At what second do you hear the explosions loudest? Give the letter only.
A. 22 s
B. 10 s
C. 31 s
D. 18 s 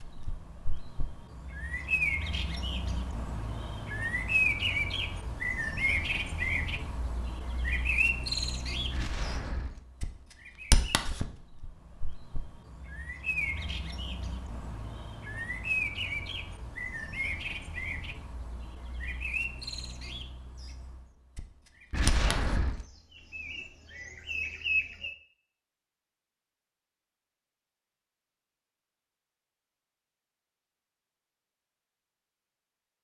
A.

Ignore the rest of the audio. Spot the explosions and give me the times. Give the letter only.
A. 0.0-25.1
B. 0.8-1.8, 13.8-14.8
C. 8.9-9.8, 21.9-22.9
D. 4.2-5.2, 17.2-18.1
C.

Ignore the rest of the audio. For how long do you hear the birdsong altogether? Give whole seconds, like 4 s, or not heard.
25 s.